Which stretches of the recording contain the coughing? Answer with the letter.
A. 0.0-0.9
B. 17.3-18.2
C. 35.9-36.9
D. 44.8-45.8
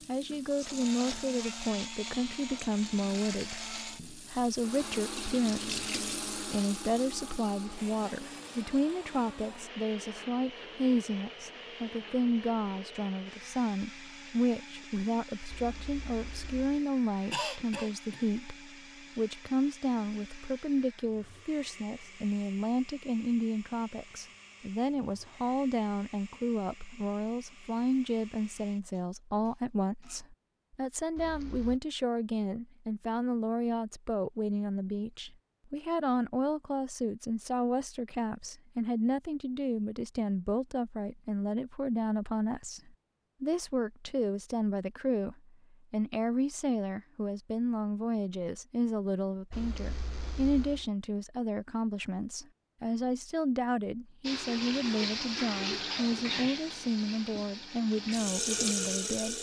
B.